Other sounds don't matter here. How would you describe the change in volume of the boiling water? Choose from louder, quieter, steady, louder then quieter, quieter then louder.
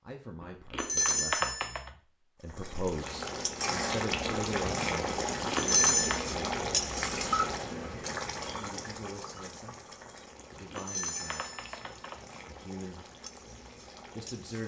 quieter.